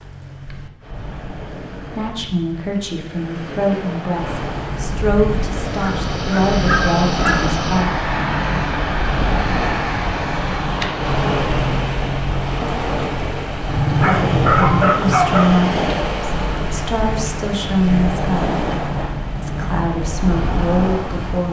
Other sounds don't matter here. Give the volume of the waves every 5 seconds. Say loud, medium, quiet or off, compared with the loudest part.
medium, loud, loud, loud, loud.